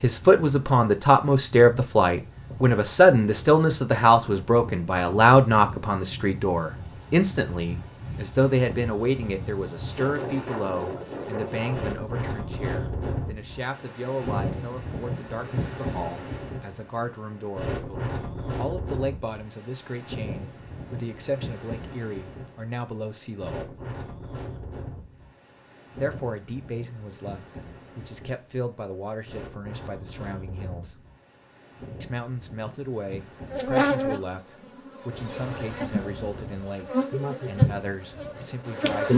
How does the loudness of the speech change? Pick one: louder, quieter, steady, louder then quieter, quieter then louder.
quieter.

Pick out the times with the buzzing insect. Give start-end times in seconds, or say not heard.
33.5-39.1.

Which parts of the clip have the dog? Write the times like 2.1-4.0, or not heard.
not heard.